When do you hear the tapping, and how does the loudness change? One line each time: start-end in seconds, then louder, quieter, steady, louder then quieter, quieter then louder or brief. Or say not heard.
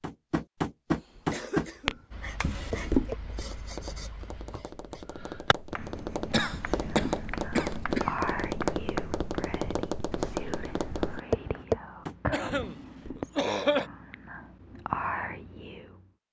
0.0-12.2 quieter then louder.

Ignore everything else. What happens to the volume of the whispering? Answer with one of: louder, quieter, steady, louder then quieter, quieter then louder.
quieter then louder.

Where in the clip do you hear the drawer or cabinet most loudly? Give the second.
3 s.